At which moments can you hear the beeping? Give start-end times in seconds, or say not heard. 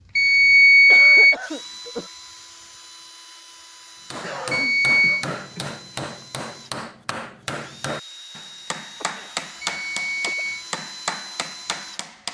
0.1-1.4, 4.5-5.2, 9.6-10.7.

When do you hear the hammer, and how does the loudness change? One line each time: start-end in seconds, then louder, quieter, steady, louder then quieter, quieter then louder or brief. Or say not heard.
4.1-12.2 steady.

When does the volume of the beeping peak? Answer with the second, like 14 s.
1 s.